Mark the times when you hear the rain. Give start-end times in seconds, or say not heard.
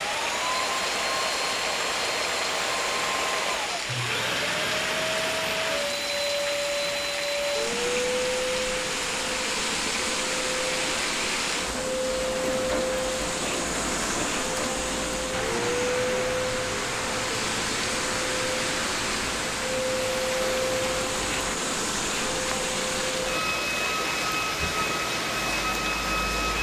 0.0-26.5.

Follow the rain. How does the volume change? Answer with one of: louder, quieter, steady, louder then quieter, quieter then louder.
steady.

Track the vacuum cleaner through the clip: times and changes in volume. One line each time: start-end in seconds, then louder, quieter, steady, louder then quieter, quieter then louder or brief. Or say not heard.
0.0-26.5 steady.